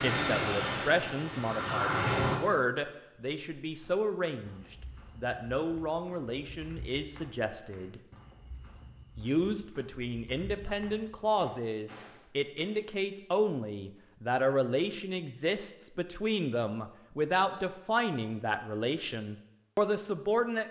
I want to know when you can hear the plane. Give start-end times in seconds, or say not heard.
0.0-2.4.